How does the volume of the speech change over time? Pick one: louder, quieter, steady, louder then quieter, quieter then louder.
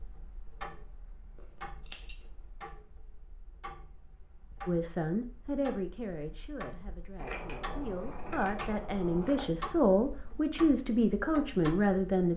quieter then louder.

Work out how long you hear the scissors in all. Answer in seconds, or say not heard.
3 s.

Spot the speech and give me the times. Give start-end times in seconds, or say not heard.
4.7-12.3.